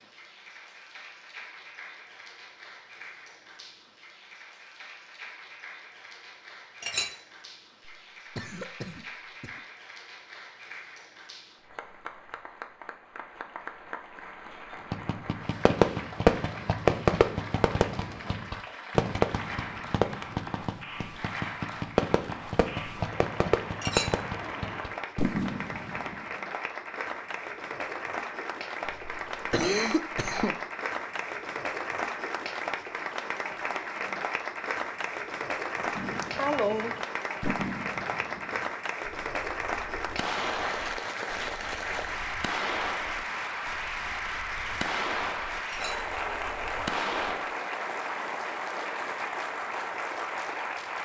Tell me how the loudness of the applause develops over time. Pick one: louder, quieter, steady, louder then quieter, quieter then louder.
louder.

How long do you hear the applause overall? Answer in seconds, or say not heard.
51 s.